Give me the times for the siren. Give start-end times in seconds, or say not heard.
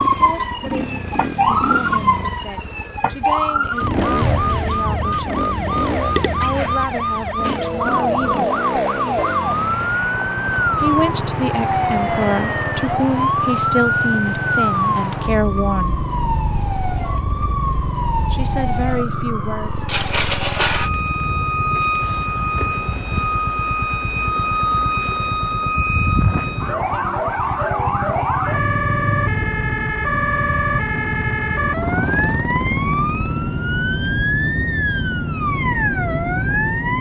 0.0-36.9.